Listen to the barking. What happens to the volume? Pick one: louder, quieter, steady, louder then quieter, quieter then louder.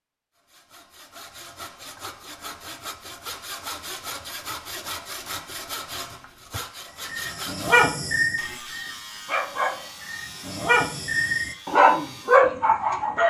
quieter then louder.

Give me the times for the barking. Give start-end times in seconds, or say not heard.
7.0-13.2.